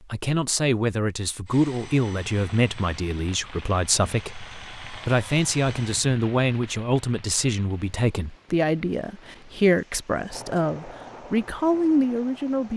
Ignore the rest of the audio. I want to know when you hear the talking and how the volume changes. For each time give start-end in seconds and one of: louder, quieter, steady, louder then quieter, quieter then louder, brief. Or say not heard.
0.1-12.7 steady.